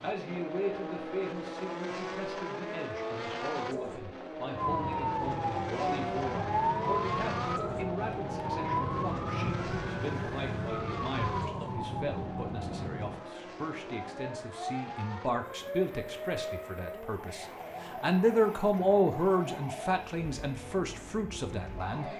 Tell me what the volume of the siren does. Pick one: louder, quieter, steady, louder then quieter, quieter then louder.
quieter.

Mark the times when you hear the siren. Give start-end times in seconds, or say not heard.
4.5-22.1.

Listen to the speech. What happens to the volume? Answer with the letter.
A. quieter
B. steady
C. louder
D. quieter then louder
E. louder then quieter
C.